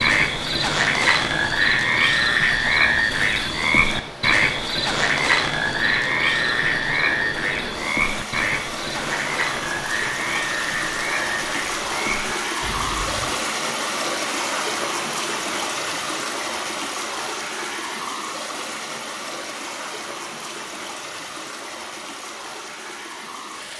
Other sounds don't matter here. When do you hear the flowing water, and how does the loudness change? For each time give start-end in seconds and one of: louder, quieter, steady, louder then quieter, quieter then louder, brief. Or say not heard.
0.1-23.7 louder then quieter.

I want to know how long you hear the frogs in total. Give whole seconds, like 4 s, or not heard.
13 s.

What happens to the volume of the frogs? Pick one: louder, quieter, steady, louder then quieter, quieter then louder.
quieter.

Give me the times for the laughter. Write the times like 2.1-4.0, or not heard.
not heard.